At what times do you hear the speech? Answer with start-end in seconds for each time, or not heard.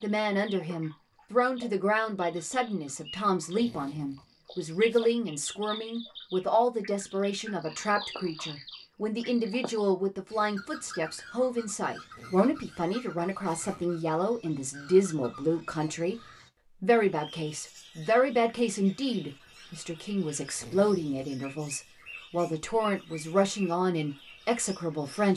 0.0-16.1, 16.8-25.3.